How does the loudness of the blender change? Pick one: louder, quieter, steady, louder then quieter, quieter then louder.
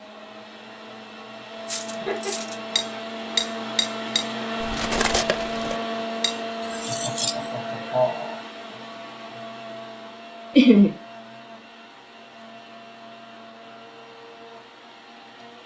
louder then quieter.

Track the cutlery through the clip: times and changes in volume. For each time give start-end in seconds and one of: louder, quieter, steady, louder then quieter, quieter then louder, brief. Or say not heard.
1.6-7.5 louder then quieter.